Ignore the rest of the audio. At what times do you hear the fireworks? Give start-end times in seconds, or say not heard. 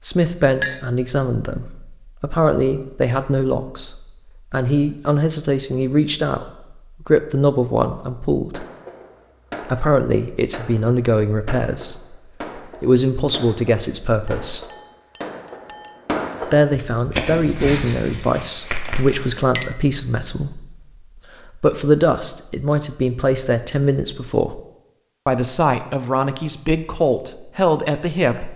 8.5-19.4.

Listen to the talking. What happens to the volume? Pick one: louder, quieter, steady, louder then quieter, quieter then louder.
steady.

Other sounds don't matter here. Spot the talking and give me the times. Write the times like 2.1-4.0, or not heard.
0.0-8.7, 9.6-14.7, 16.4-24.6, 25.2-28.5.